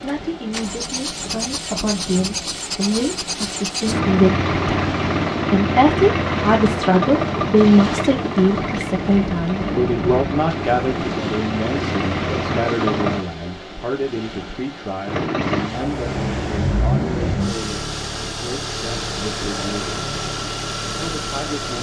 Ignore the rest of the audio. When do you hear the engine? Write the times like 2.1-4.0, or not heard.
0.0-13.2, 15.1-21.7.